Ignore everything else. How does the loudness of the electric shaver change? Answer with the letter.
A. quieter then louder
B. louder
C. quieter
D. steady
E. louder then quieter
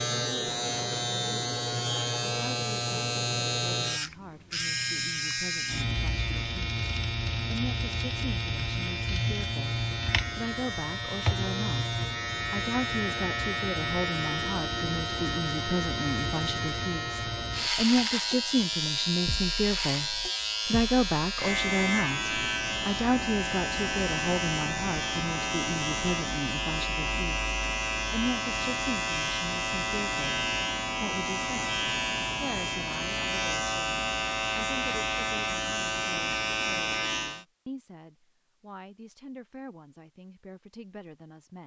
D.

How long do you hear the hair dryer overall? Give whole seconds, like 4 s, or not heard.
not heard.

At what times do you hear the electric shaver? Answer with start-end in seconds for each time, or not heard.
0.0-37.5.